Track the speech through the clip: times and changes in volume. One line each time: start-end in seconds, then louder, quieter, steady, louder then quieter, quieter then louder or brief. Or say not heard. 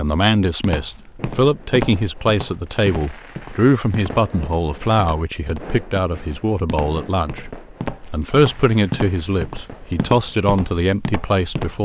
0.0-11.8 steady.